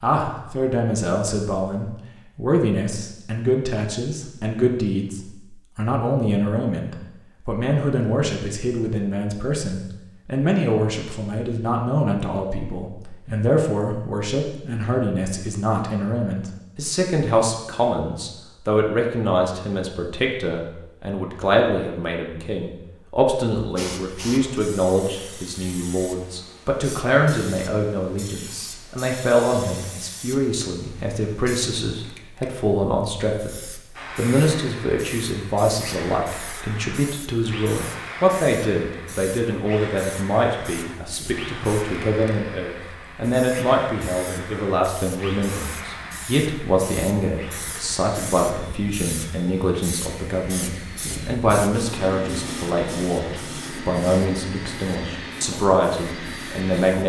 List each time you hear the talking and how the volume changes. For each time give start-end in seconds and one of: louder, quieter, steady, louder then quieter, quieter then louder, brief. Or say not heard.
0.0-57.0 steady.